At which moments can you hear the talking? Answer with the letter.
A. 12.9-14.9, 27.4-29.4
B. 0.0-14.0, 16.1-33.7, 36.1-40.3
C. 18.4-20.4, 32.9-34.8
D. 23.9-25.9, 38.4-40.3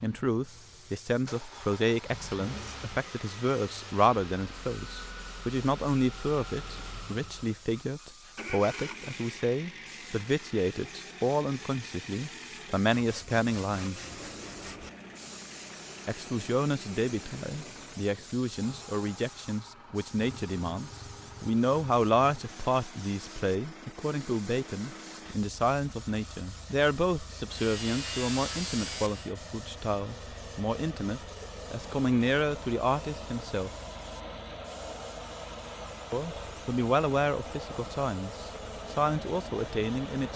B.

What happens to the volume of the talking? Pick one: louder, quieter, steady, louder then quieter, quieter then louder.
steady.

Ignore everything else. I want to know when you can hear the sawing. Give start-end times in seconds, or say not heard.
12.9-14.9, 27.4-29.4.